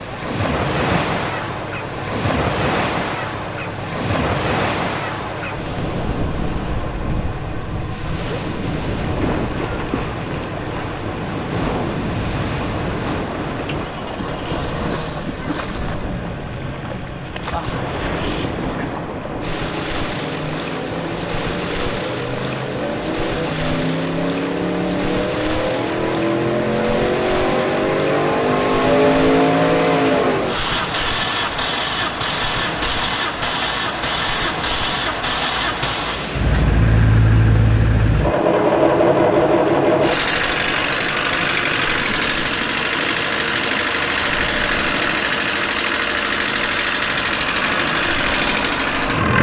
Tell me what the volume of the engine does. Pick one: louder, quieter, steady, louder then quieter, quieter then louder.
louder.